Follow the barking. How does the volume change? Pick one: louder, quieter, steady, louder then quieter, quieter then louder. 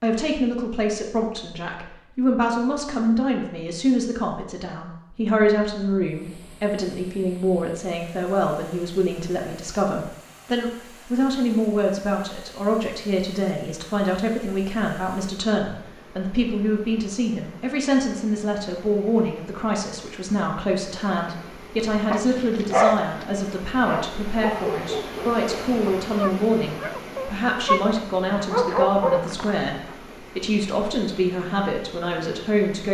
quieter then louder.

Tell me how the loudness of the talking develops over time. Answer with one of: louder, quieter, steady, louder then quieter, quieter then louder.
steady.